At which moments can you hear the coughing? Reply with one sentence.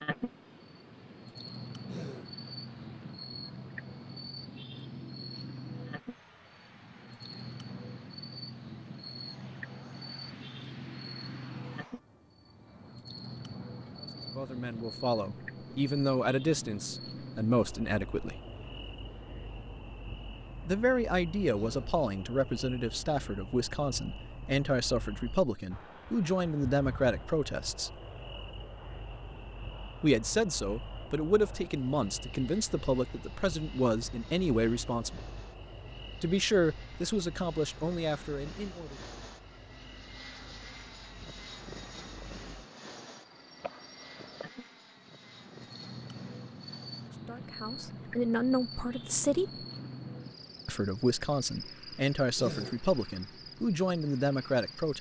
You can hear the coughing from 1.9 to 2.4 s, from 21.6 to 22.0 s and from 52.4 to 52.9 s.